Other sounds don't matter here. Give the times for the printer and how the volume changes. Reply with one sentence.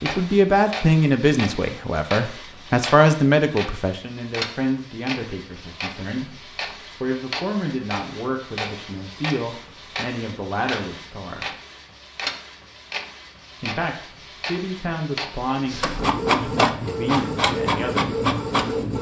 The printer can be heard from 0.0 to 18.9 s, getting louder.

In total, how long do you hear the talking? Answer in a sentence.
The talking can be heard for 16 seconds in total.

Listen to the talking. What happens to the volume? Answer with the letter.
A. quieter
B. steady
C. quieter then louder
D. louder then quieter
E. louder
A.